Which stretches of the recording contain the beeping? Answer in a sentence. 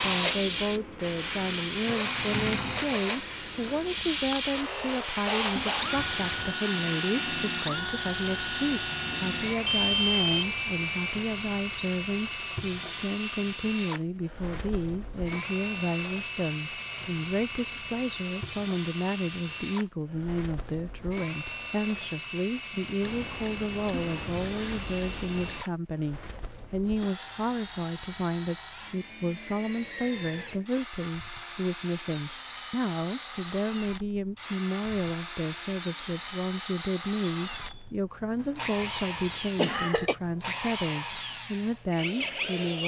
The beeping can be heard from 9.6 to 11.2 s, from 23.0 to 25.6 s and from 37.4 to 38.0 s.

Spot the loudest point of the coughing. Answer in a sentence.
The volume of the coughing peaks at 40 seconds.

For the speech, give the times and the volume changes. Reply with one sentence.
The speech can be heard from 0.0 to 42.8 s, at a steady volume.